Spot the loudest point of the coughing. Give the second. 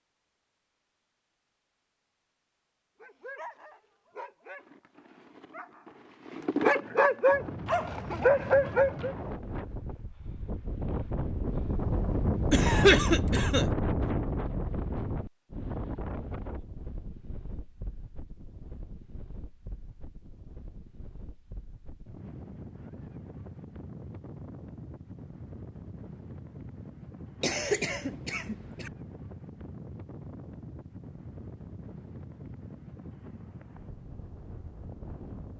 13 s.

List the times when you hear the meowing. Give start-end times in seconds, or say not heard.
not heard.